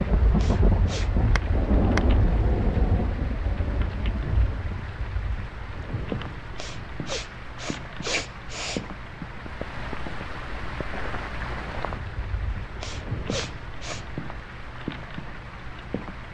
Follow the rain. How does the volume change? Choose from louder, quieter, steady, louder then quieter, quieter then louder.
quieter.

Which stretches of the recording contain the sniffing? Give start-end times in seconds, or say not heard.
0.3-1.1, 6.5-8.8, 12.8-14.1.